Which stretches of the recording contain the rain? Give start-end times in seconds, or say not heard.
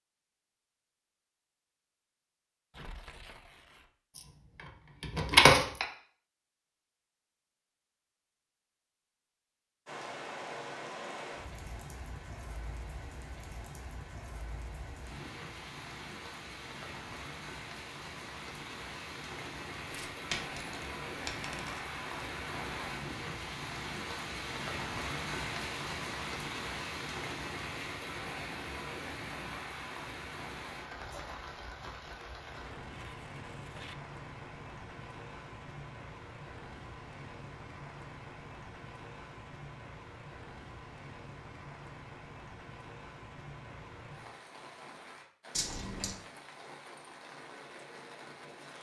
9.8-48.7.